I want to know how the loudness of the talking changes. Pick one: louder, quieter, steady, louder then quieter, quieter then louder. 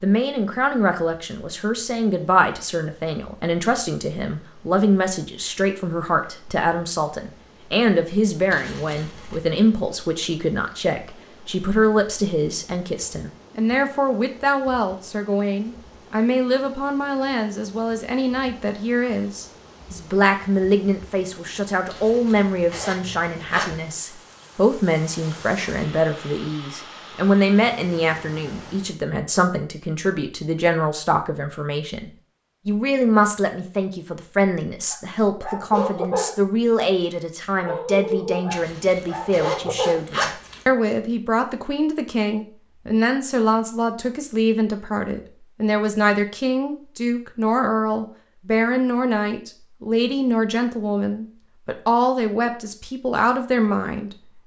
steady.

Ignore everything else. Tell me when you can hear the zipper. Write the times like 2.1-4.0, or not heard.
8.5-9.3, 21.9-23.7, 38.5-40.6.